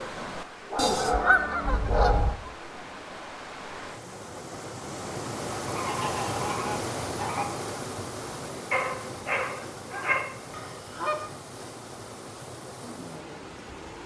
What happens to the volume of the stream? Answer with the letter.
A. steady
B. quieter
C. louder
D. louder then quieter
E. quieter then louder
D.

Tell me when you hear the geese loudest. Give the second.
1 s.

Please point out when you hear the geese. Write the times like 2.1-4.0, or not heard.
0.8-2.4, 5.7-7.5, 10.5-11.3.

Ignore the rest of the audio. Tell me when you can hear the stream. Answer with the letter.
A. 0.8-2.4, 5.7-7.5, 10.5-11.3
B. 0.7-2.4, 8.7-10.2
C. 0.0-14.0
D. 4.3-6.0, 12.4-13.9
C.